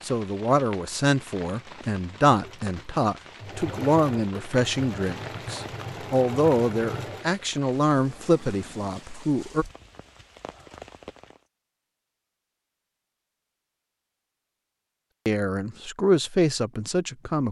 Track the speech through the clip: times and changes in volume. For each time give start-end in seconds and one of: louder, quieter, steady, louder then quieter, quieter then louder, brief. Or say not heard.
0.0-9.7 steady
15.2-17.4 brief.